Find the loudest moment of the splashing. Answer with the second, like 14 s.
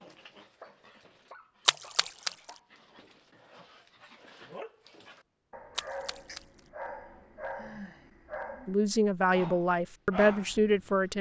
2 s.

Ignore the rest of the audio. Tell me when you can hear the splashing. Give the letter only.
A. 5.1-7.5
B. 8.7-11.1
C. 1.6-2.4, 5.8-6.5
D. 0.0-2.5
C.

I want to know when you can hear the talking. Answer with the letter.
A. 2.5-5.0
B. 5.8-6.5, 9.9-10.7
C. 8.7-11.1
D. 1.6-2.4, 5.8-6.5
C.